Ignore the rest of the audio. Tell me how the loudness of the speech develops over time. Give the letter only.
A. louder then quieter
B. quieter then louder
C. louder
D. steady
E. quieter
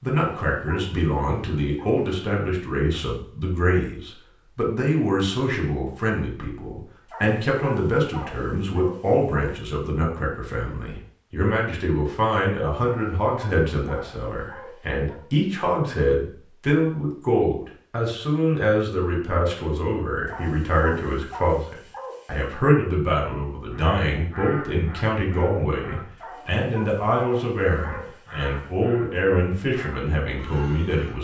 D.